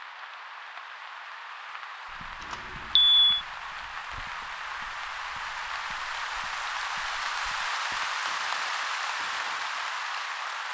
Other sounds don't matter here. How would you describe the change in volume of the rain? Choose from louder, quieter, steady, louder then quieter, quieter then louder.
louder.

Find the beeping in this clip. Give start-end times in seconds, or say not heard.
2.5-3.5.